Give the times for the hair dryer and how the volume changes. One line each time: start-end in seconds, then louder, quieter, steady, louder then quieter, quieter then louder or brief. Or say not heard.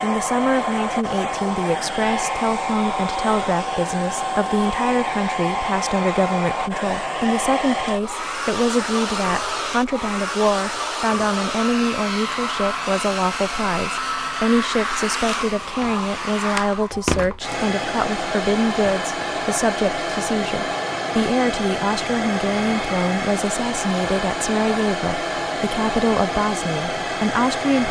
0.0-27.8 steady.